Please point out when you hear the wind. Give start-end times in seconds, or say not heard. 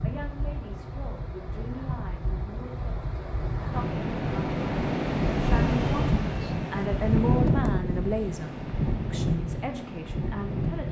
0.0-10.8.